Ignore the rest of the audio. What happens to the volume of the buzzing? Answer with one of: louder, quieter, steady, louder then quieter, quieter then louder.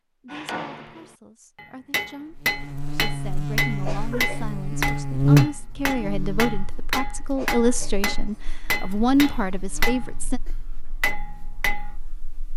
louder then quieter.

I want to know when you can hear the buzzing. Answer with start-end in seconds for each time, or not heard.
2.3-12.5.